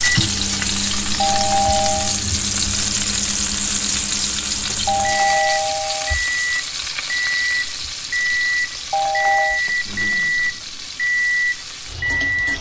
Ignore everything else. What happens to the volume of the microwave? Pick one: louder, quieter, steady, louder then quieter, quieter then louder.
louder.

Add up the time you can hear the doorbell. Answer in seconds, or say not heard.
3 s.